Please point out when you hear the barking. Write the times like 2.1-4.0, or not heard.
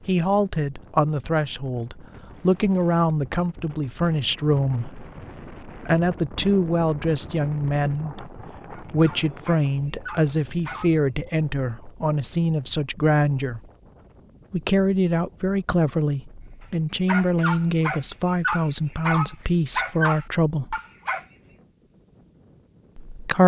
8.7-10.9, 17.1-21.2.